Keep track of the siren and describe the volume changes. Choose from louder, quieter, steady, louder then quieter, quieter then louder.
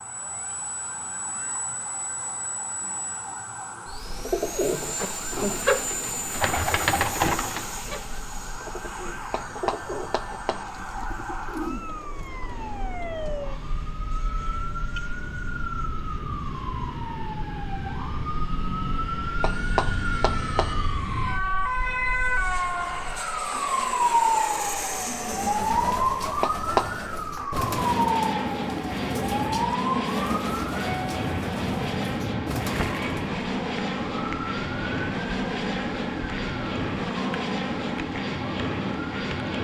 louder then quieter.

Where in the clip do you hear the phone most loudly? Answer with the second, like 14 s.
27 s.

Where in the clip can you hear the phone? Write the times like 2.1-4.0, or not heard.
9.3-10.7, 19.4-20.8, 26.4-27.1.